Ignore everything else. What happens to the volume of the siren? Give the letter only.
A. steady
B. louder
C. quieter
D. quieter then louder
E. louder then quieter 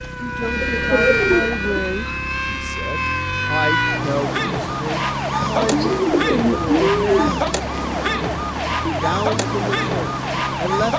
A.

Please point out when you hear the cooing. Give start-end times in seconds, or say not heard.
0.4-2.2, 5.5-7.4.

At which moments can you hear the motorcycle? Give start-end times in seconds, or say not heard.
0.0-10.9.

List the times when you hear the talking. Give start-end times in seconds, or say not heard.
0.1-7.5, 8.8-10.9.